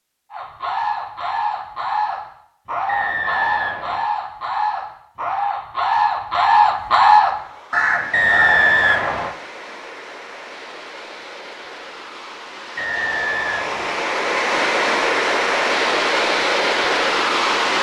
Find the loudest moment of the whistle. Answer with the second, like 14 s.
9 s.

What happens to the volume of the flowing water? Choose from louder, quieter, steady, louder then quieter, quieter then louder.
louder.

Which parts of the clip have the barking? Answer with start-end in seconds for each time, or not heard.
not heard.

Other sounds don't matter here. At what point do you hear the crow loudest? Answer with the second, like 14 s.
7 s.